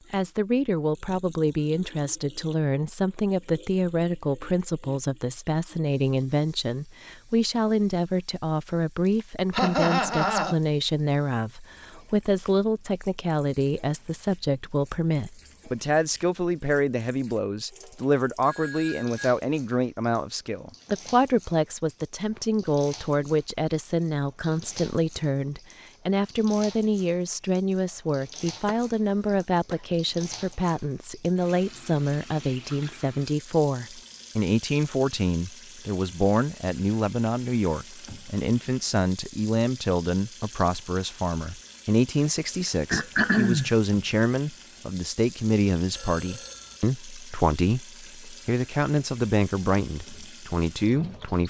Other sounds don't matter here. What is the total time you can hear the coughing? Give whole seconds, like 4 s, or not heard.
3 s.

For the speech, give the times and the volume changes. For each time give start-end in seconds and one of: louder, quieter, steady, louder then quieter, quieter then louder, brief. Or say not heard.
0.1-51.4 steady.